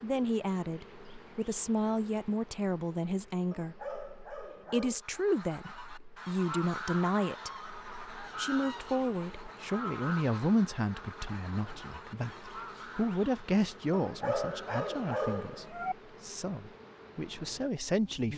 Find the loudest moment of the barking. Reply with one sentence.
The volume of the barking peaks at 14 seconds.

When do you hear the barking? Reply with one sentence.
You can hear the barking from 3.5 to 5.0 s and from 13.9 to 15.9 s.